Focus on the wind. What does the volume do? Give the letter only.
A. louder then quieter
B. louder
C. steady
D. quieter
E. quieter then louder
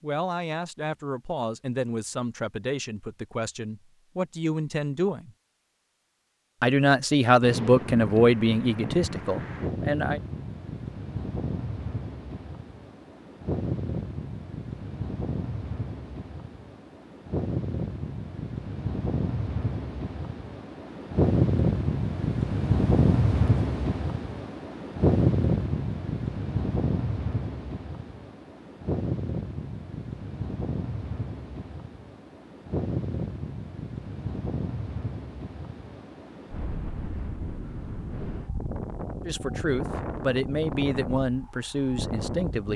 A.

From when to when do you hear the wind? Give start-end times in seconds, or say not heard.
7.4-42.7.